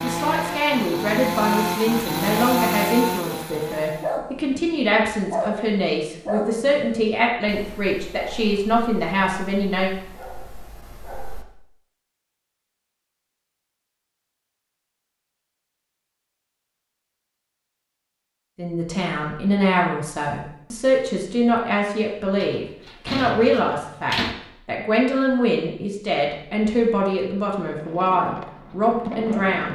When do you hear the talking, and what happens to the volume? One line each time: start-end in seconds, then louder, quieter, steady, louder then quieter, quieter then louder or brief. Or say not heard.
0.0-9.9 steady
18.6-29.7 steady.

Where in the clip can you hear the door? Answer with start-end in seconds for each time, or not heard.
22.4-24.4.